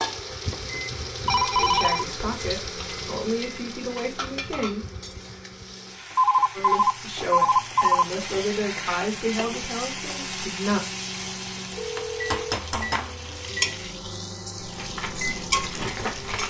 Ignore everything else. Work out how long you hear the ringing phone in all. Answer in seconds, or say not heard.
4 s.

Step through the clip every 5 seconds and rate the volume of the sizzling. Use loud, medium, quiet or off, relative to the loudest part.
loud, medium, loud, loud.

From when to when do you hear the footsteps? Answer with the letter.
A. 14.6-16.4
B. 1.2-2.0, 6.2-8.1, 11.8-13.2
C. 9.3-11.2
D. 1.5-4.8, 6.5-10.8
A.